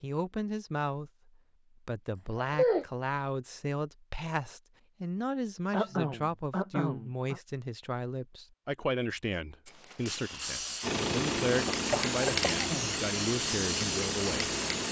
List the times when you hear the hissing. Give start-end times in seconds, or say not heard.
9.7-14.8.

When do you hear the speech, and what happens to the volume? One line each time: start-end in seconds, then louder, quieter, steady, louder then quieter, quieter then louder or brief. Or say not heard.
0.0-14.6 steady.